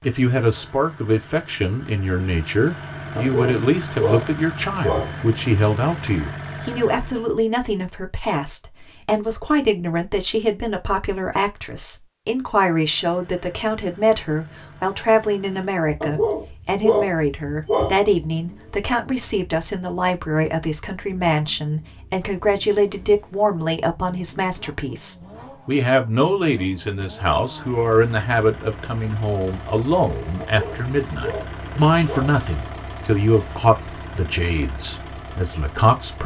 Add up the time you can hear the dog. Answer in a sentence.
You can hear the dog for 6 seconds altogether.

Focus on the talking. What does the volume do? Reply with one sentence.
The volume of the talking stays about the same.